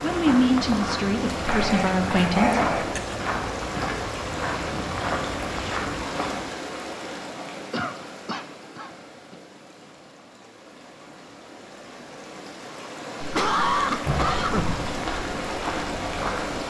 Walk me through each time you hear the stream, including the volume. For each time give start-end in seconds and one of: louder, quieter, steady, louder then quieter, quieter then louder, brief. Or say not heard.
0.0-16.6 quieter then louder.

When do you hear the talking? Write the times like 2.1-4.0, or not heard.
0.0-2.6.